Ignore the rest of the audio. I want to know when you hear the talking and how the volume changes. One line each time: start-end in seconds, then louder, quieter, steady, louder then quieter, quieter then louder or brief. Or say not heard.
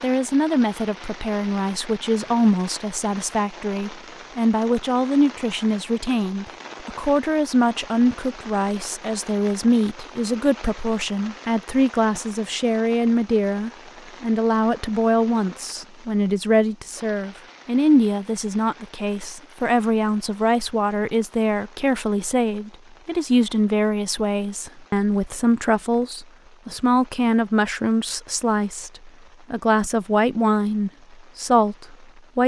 0.0-32.4 steady.